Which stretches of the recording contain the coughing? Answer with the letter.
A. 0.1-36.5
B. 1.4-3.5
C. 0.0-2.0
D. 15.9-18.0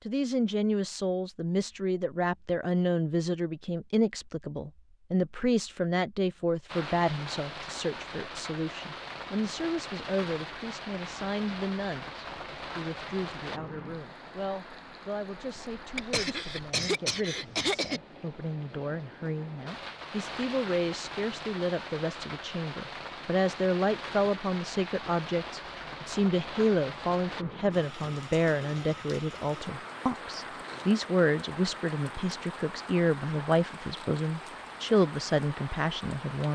D.